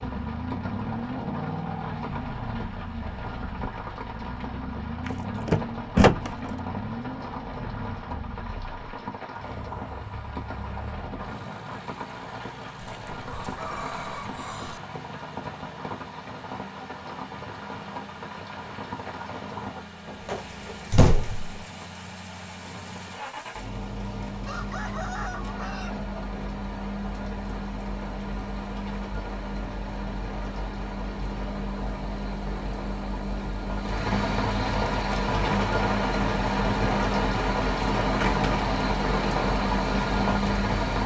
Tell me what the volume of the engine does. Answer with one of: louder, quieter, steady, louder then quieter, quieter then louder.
quieter then louder.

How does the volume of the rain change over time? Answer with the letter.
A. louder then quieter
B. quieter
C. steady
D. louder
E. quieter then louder
D.